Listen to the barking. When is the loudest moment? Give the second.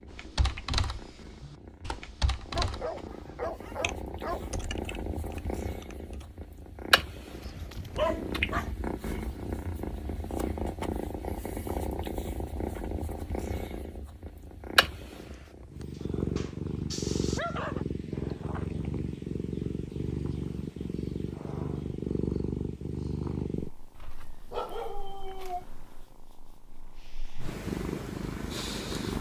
8 s.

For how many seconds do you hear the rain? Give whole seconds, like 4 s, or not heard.
not heard.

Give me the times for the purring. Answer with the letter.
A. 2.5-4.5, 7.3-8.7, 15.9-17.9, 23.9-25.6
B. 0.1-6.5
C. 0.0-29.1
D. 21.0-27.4
C.